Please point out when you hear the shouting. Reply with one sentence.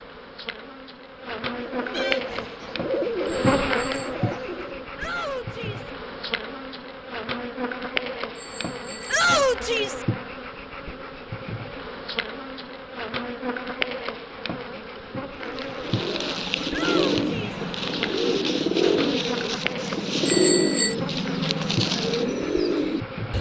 The shouting can be heard from 5.0 to 5.9 s, from 9.1 to 10.1 s and from 16.7 to 17.6 s.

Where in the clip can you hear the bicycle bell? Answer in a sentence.
The bicycle bell can be heard from 3.3 to 4.2 s, from 8.3 to 9.2 s and from 20.2 to 20.9 s.